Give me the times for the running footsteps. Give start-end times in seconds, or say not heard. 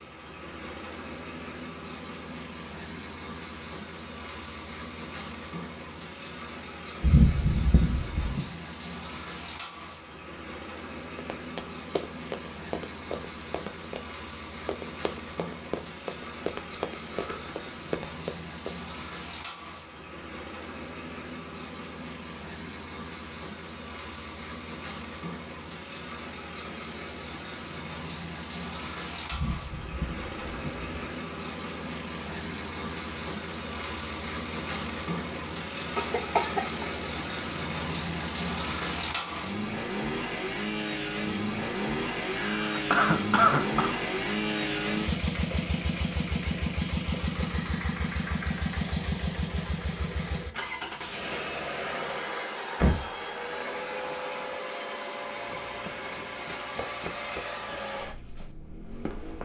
11.2-18.8, 55.3-59.4.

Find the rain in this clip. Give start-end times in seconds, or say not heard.
not heard.